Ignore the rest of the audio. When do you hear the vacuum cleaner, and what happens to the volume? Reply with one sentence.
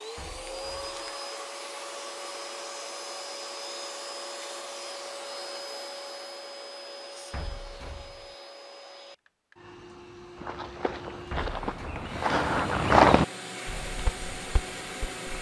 You can hear the vacuum cleaner from 0.0 to 15.3 s, getting quieter then louder.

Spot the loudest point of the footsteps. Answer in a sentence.
The loudest moment of the footsteps is at 13 seconds.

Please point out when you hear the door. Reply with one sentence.
You can hear the door from 0.1 to 1.1 s, from 7.3 to 8.3 s and from 11.3 to 12.1 s.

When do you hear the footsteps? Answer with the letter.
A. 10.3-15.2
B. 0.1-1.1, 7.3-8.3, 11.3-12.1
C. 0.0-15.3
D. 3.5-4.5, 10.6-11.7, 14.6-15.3
A.